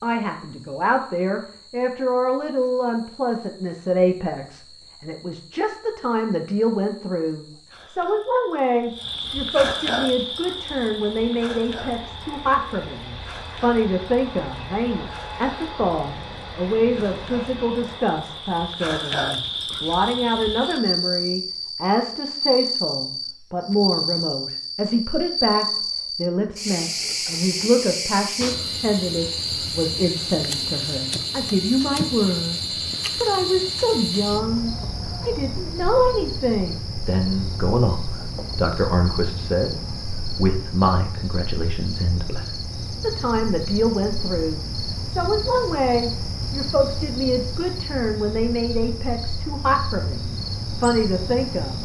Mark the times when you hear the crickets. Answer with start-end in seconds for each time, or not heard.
0.0-51.7.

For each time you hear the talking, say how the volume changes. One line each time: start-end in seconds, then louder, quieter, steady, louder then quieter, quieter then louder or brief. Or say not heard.
0.0-51.7 steady.